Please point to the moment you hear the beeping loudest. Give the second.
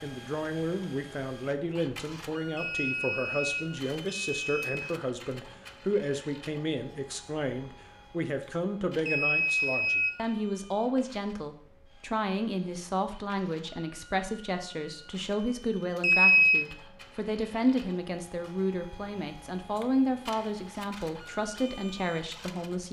16 s.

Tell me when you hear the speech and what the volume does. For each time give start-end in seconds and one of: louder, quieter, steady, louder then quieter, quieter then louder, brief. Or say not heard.
0.0-22.8 steady.